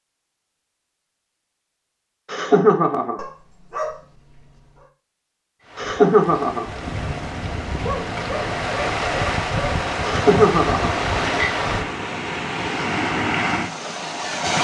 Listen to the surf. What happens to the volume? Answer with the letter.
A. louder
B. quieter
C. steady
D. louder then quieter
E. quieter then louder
A.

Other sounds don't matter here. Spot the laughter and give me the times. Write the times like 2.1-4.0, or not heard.
2.3-3.2, 5.8-6.7, 10.1-10.9.